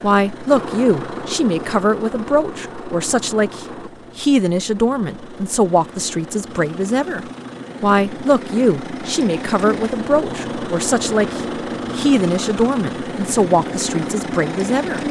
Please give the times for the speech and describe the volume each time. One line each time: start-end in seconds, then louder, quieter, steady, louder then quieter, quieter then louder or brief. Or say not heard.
0.0-15.0 steady.